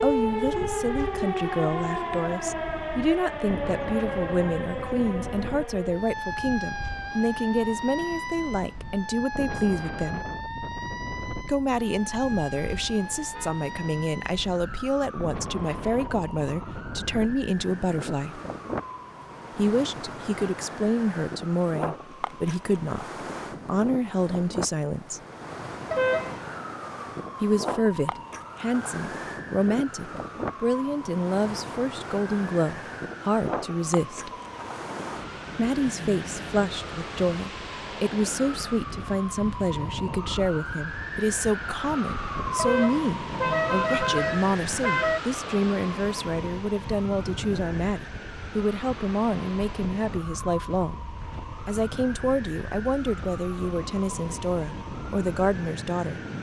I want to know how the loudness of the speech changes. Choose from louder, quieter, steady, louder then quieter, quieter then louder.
steady.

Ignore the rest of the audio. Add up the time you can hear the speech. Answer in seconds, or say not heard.
50 s.